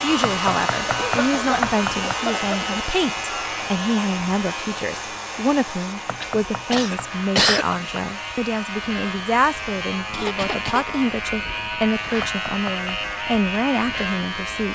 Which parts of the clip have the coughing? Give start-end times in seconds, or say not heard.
0.8-2.8, 6.2-7.9, 10.1-10.9.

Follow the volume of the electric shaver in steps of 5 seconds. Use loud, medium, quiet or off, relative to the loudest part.
loud, medium, loud.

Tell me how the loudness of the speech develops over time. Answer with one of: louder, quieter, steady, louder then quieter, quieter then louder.
steady.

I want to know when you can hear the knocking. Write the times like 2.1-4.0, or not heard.
0.2-2.1, 6.0-8.0, 12.2-12.9.